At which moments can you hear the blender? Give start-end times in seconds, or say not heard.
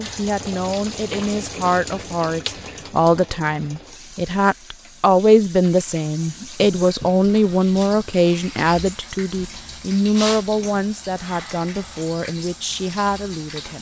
not heard.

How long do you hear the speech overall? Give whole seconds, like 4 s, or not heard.
14 s.